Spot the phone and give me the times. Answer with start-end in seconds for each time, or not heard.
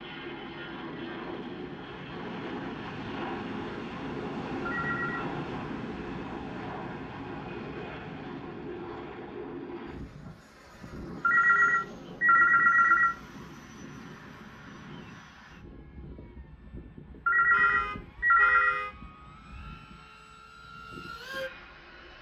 4.7-5.2, 11.2-13.1, 17.2-18.8.